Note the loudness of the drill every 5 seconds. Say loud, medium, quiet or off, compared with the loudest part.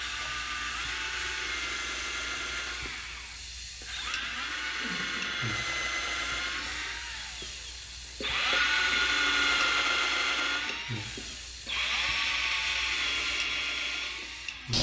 medium, loud, loud.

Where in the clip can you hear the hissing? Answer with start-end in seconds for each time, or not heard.
0.0-14.7.